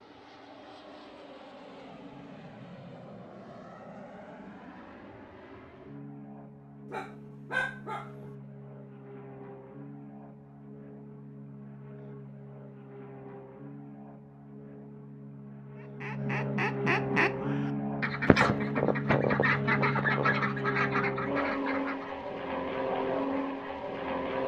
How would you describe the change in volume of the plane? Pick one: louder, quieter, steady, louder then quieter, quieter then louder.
louder.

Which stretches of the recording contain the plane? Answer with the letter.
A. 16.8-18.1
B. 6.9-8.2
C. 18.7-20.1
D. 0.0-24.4
D.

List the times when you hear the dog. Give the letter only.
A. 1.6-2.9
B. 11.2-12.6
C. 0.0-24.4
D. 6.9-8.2
D.